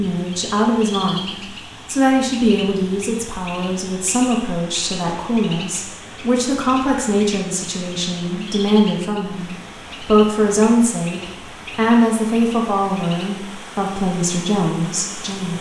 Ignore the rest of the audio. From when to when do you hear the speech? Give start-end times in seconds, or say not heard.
0.0-15.5.